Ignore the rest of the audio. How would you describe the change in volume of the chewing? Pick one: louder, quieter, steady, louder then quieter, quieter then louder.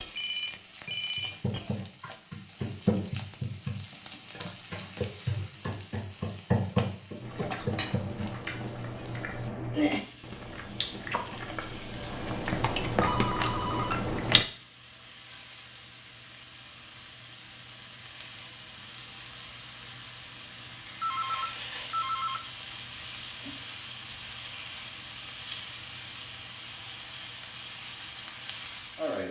louder.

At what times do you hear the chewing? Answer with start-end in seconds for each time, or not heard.
7.2-14.4.